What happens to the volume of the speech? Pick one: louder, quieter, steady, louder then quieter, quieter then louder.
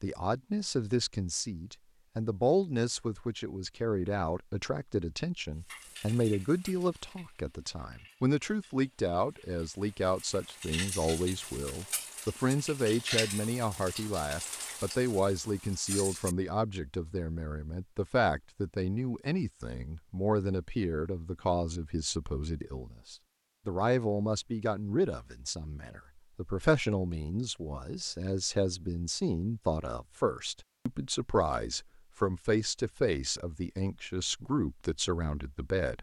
steady.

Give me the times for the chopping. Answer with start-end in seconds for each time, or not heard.
not heard.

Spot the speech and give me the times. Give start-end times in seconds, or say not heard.
0.0-35.9.